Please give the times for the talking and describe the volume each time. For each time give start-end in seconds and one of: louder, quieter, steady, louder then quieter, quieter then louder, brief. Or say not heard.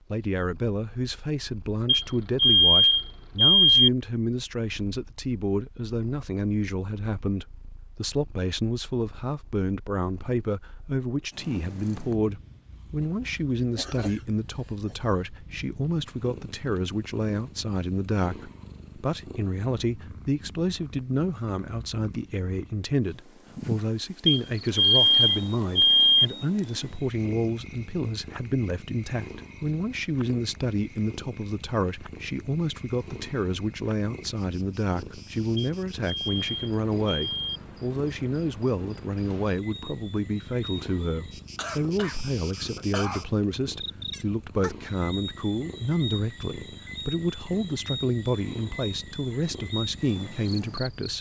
0.1-51.1 steady.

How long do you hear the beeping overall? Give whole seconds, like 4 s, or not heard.
6 s.